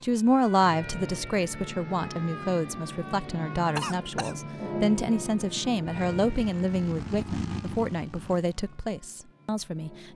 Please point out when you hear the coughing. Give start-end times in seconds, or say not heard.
3.8-4.3.